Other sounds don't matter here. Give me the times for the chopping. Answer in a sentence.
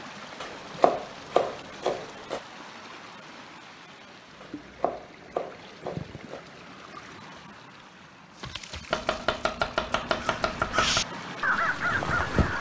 The chopping can be heard from 0.4 to 2.4 s, from 4.4 to 6.4 s and from 8.9 to 11.1 s.